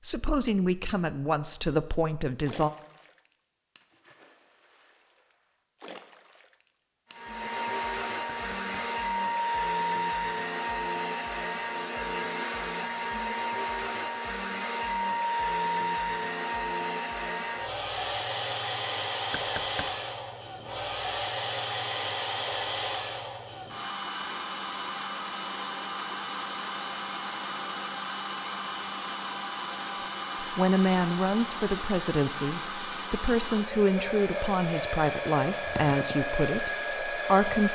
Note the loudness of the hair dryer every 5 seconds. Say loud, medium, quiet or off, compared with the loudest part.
off, loud, loud, loud, loud, loud, loud, loud.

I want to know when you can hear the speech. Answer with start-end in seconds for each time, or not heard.
0.0-2.7, 30.4-37.6.